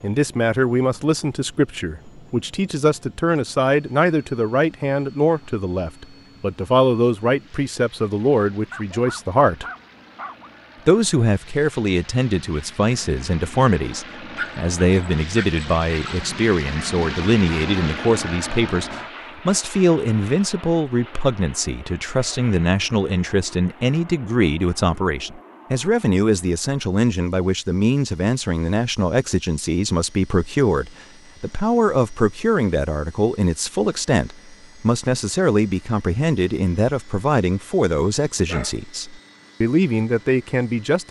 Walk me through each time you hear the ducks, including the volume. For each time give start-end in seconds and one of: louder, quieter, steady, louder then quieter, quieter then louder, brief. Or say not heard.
not heard.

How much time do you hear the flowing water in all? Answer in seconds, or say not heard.
not heard.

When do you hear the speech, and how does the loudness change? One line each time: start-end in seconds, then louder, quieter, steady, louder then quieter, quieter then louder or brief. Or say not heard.
0.0-9.7 steady
10.8-41.0 steady.